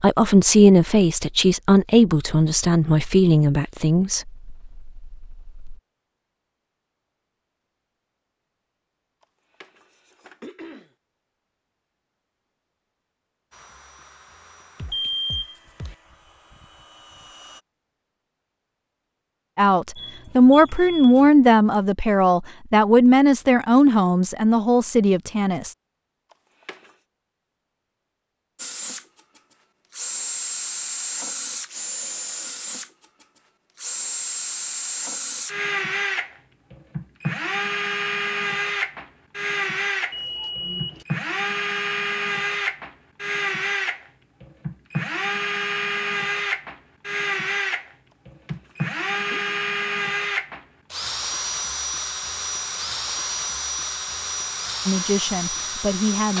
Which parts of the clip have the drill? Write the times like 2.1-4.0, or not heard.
13.5-17.6, 28.6-56.3.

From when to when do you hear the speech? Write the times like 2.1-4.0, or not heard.
0.0-5.8, 19.6-25.8, 54.9-56.3.